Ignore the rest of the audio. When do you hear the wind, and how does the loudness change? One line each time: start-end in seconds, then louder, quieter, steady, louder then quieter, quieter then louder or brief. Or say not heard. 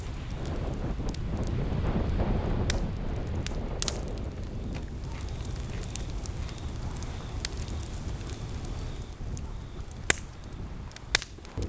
0.0-11.6 quieter.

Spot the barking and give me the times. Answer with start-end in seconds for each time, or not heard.
not heard.